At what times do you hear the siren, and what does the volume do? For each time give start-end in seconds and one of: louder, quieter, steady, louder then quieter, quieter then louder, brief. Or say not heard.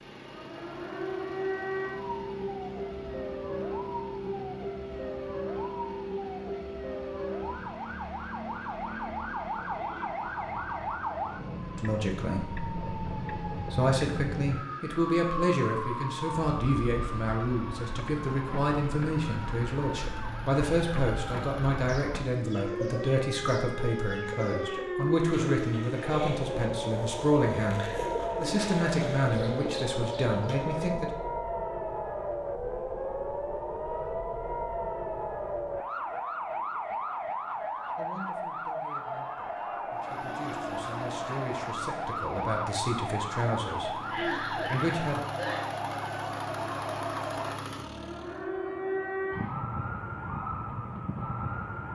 0.0-51.9 steady.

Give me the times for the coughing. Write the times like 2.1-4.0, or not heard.
44.0-45.6.